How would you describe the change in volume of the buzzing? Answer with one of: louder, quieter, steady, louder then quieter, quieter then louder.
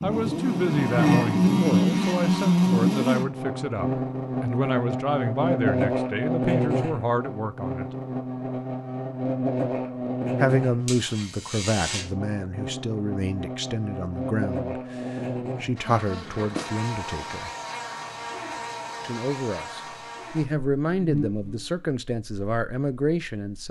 quieter.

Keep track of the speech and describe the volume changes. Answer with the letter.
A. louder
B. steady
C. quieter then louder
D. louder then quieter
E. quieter
B.